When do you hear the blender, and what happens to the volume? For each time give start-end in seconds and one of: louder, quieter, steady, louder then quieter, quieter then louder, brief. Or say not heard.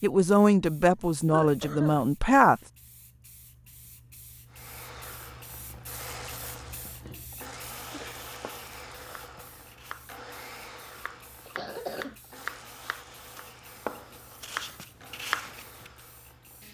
4.5-16.6 quieter.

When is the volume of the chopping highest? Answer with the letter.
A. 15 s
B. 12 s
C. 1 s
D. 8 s
A.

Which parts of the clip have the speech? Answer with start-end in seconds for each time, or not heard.
0.0-2.6.